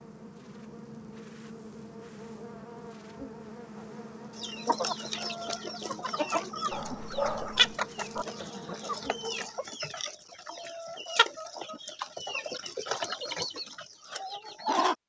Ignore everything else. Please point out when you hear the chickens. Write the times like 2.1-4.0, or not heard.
4.3-14.9.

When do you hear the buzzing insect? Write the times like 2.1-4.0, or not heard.
0.0-9.7.